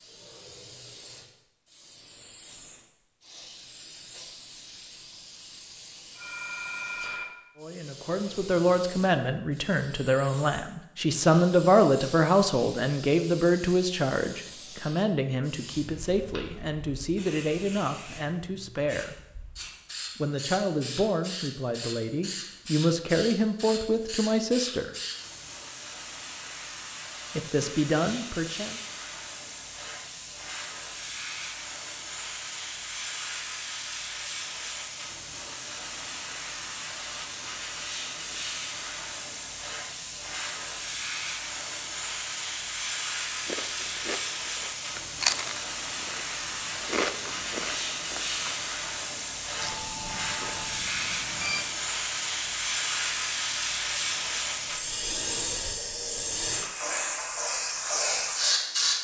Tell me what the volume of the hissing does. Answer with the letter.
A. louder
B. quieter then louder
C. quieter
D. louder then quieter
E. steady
A.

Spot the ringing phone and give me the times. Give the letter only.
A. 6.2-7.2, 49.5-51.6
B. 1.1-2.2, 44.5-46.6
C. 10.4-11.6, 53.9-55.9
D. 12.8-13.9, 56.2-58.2
A.